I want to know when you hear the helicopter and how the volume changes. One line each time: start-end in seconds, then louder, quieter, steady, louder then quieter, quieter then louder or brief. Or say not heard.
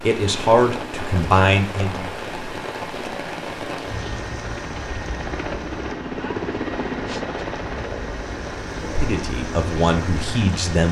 0.0-10.8 louder then quieter.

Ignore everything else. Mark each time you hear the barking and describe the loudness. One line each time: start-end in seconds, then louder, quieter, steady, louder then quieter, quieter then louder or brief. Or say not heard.
not heard.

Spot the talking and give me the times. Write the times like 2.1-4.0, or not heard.
0.0-2.1, 8.8-10.8.